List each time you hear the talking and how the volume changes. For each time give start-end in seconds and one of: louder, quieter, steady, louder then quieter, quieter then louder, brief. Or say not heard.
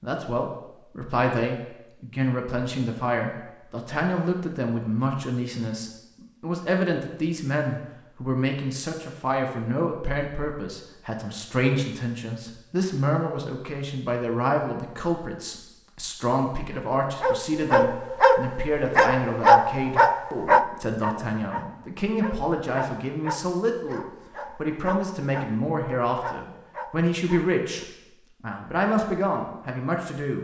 0.0-30.3 steady.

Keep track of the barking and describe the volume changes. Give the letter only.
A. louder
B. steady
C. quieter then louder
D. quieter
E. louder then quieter
D.